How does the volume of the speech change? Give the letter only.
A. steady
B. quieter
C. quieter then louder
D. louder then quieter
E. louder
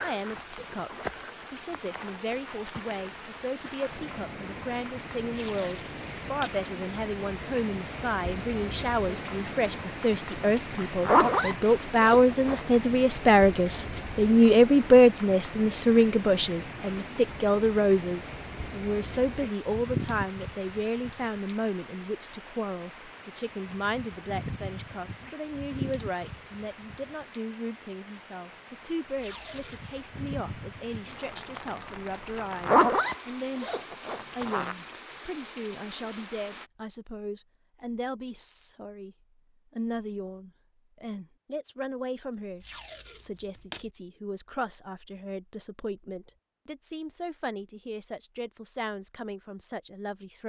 D.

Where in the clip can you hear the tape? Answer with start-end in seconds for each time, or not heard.
5.3-6.5, 29.1-30.1, 42.6-43.8.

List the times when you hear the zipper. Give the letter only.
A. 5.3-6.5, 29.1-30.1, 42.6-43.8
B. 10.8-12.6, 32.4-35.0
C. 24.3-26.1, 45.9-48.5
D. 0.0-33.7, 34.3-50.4
B.